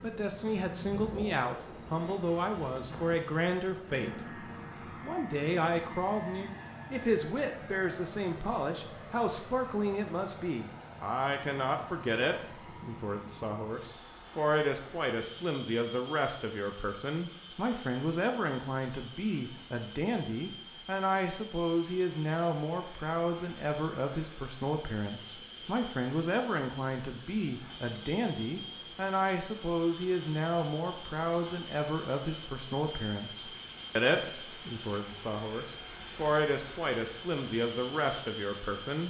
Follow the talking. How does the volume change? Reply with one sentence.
The loudness of the talking stays about the same.